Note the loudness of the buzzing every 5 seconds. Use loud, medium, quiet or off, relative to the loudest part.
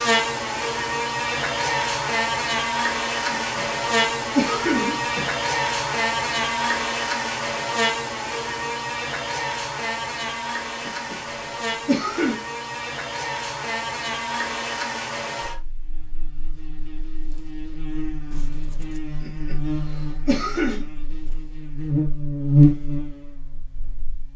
loud, loud, medium, medium, loud.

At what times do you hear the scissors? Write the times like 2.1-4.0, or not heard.
18.3-19.0.